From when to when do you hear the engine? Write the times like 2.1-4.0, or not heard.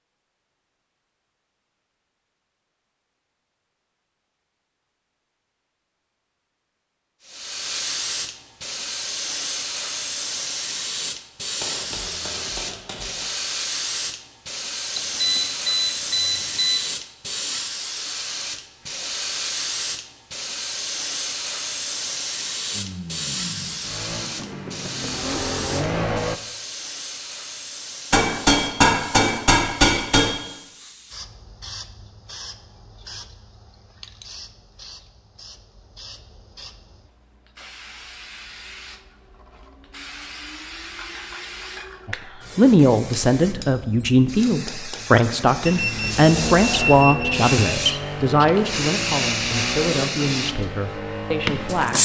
22.7-26.4, 45.2-51.9.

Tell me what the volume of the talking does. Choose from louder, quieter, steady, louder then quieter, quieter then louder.
quieter.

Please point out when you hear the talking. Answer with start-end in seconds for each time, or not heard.
42.0-51.9.